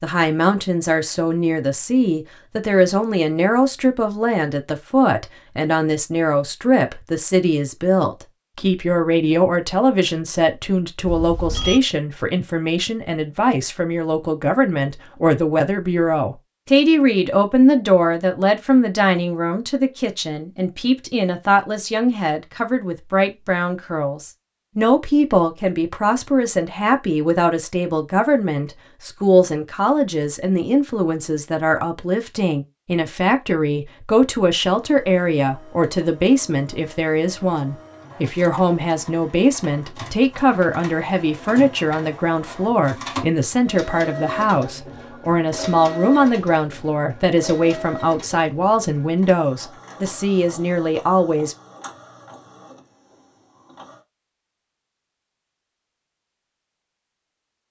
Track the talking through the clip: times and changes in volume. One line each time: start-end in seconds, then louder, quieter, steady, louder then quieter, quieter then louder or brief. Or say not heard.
0.0-51.5 steady.